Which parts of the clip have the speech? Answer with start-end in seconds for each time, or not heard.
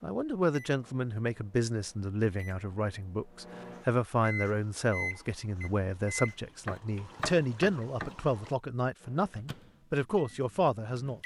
0.0-11.2.